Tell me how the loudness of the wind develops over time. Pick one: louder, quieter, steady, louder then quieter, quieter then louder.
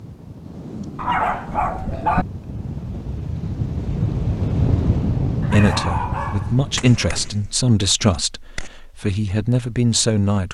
louder then quieter.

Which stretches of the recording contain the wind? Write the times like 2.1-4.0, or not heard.
0.0-7.5.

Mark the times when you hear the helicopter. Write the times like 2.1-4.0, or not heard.
not heard.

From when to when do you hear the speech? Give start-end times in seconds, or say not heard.
5.5-10.4.